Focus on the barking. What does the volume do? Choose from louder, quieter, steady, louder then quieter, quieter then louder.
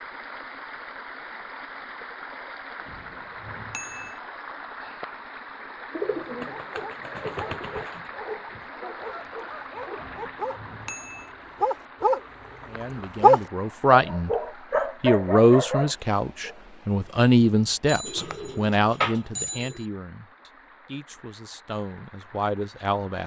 louder then quieter.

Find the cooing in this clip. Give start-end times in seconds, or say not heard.
5.9-8.1, 18.1-19.9.